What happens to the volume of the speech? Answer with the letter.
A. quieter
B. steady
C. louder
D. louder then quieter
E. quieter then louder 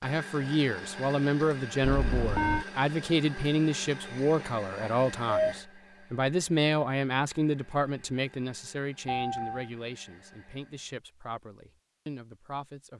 A.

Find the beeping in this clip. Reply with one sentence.
You can hear the beeping from 1.8 to 2.6 s, from 4.5 to 5.5 s and from 9.1 to 9.7 s.